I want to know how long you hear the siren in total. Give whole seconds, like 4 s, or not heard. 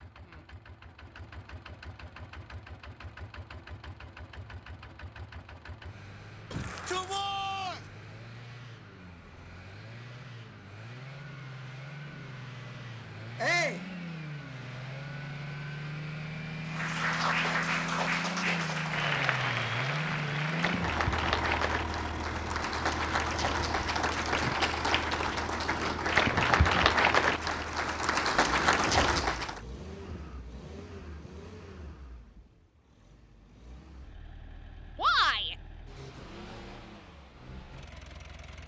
not heard.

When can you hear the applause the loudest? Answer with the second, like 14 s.
27 s.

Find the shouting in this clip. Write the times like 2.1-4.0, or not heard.
6.5-7.8, 13.3-13.8, 35.0-35.5.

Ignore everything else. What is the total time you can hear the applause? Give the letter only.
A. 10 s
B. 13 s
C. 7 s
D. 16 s
B.